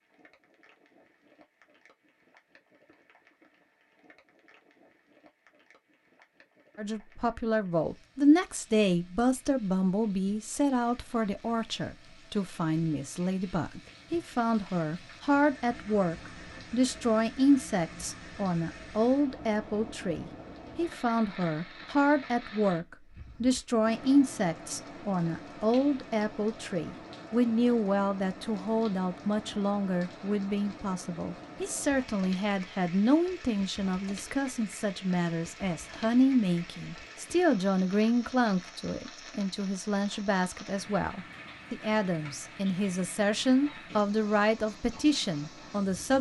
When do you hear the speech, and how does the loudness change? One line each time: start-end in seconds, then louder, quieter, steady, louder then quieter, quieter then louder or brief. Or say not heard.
6.8-46.1 steady.